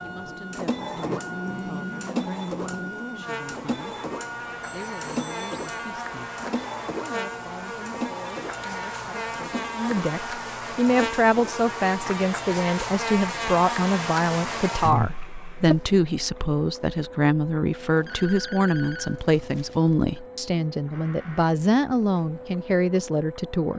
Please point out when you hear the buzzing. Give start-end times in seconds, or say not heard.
0.0-15.8.